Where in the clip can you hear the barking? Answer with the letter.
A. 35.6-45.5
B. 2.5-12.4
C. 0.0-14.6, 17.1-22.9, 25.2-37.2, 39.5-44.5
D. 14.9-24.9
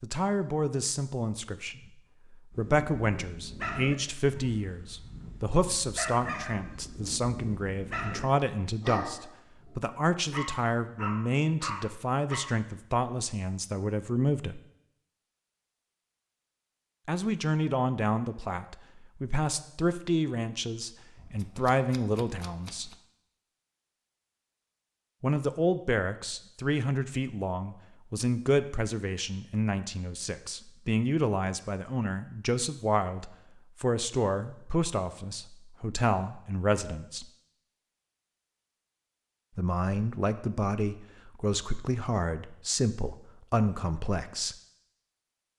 B.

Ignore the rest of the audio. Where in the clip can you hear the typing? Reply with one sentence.
The typing can't be heard in this clip.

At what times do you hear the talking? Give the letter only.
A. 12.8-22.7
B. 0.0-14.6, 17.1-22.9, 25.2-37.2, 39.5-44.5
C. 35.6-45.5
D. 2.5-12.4
B.